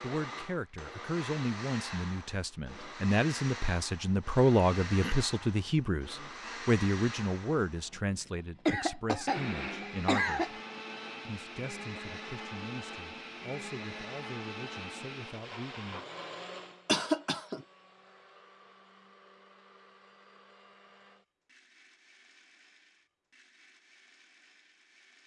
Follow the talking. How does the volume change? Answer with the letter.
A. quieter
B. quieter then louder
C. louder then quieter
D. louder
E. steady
C.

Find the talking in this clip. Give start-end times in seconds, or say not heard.
0.0-10.6, 11.2-16.1.